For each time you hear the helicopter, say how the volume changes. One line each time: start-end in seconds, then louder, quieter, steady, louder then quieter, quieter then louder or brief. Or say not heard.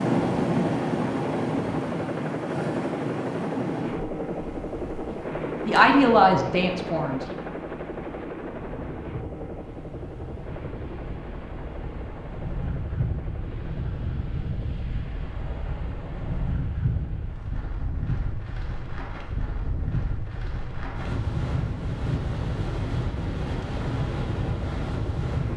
0.0-25.5 quieter then louder.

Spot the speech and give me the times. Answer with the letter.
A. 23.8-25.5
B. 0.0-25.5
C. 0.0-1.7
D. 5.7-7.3
D.